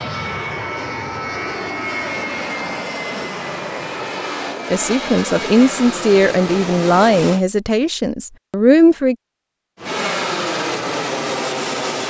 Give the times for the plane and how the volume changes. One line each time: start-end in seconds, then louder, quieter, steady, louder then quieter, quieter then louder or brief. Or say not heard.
0.0-7.5 steady
9.8-12.0 brief.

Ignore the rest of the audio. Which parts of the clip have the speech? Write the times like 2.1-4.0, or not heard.
4.7-9.2.